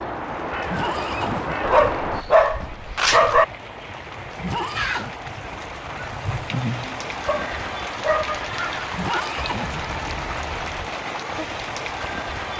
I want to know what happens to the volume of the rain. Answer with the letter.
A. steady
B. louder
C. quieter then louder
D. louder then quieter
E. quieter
B.